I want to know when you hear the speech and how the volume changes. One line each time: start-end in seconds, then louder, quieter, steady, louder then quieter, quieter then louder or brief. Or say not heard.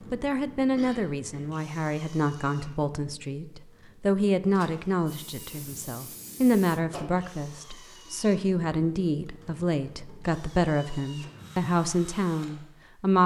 0.1-13.2 steady.